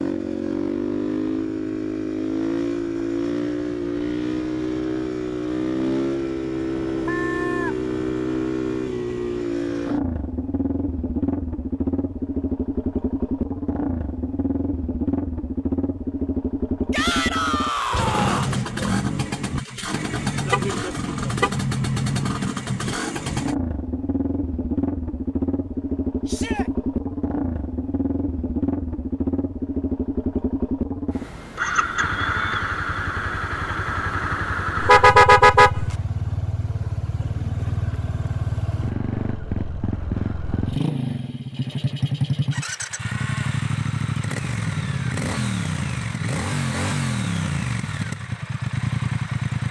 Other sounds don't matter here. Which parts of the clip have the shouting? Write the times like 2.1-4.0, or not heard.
16.9-18.6, 26.2-26.7.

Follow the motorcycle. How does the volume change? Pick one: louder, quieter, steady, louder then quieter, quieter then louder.
steady.